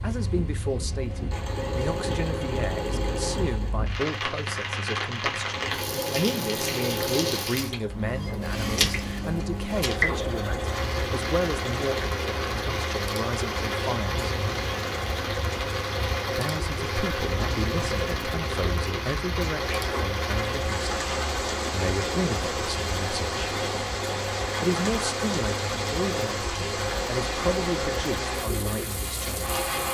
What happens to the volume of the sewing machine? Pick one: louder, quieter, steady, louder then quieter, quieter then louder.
steady.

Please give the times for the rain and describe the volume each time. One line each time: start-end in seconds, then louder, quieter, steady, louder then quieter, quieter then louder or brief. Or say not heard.
0.0-29.8 steady.